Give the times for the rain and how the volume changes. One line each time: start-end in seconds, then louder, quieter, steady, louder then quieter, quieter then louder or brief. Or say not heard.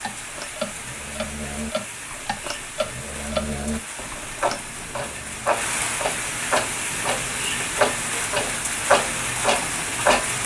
0.0-10.4 louder.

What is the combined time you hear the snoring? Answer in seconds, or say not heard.
5 s.